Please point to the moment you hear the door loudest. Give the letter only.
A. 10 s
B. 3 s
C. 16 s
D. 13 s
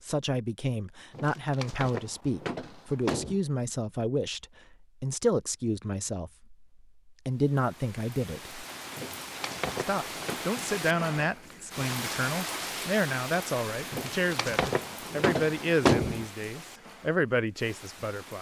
C.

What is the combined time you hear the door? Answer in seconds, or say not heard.
6 s.